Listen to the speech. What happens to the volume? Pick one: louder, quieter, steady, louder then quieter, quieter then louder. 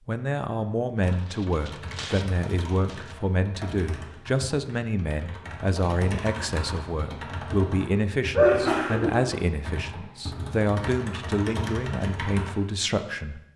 steady.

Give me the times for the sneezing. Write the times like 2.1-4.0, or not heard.
8.3-9.2.